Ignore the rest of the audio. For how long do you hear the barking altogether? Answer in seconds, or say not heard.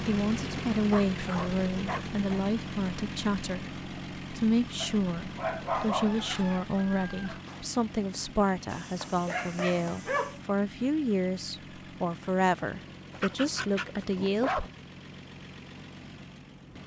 6 s.